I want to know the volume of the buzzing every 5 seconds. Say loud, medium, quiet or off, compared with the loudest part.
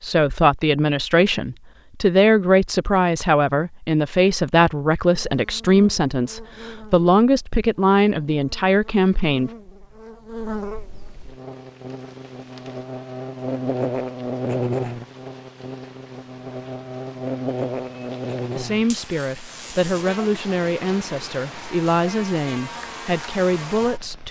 off, quiet, loud, loud, medium.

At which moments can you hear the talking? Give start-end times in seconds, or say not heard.
0.0-9.5, 18.6-24.2.